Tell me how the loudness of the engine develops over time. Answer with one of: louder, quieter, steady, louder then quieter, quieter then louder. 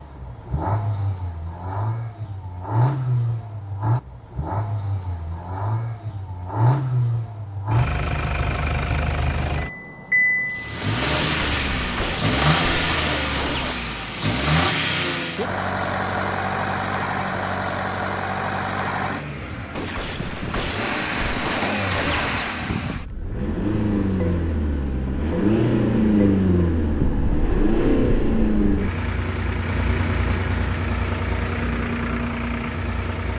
steady.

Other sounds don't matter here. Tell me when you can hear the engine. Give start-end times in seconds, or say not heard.
0.0-33.3.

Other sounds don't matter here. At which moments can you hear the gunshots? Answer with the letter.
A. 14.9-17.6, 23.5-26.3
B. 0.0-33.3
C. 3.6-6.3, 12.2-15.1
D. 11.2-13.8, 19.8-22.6
D.